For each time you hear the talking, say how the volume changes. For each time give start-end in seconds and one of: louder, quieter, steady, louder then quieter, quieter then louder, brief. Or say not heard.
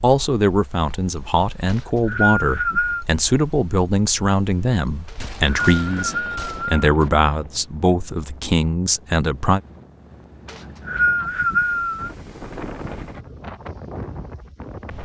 0.0-9.6 steady.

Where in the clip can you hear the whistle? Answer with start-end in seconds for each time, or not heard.
1.6-3.0, 5.0-6.8, 10.4-12.1.